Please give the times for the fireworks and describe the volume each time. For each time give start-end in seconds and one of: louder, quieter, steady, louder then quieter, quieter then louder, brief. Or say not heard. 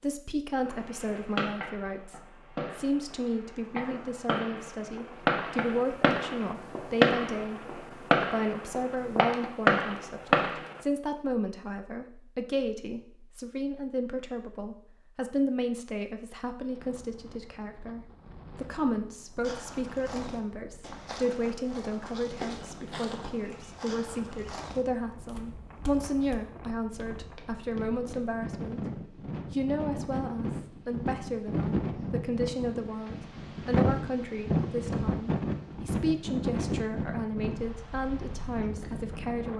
0.7-10.8 louder.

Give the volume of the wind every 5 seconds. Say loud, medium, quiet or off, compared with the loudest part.
off, off, off, quiet, quiet, medium, loud, loud.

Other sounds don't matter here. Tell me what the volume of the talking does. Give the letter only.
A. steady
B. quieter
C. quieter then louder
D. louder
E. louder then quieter
A.